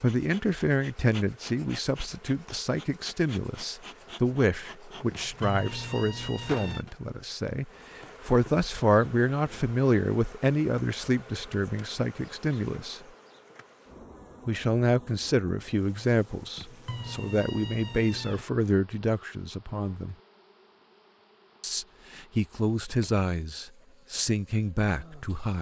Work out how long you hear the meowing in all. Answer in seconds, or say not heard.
4 s.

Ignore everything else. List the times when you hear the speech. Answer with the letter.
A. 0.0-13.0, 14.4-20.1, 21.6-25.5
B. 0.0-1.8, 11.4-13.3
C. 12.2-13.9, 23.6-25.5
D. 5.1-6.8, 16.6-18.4
A.